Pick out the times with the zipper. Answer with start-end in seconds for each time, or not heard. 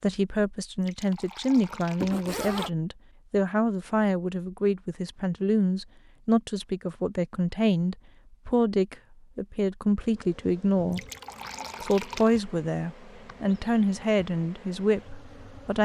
2.0-2.7.